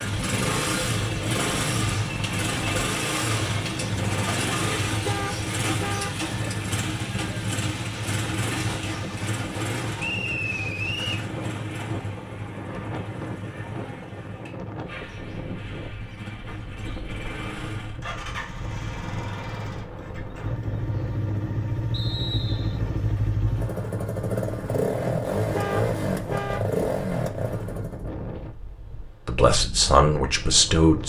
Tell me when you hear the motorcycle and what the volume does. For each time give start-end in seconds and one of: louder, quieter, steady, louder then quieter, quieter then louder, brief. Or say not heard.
0.0-28.1 quieter then louder.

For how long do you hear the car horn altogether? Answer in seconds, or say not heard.
3 s.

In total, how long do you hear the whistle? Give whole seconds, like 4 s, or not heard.
2 s.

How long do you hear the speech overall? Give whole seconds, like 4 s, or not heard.
2 s.